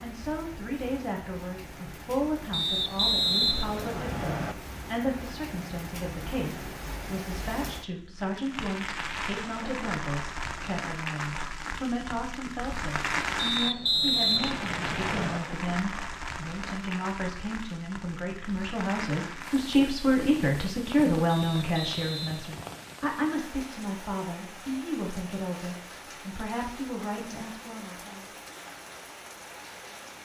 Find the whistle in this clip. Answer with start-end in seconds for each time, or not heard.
2.5-4.5, 13.3-15.4, 21.2-22.9.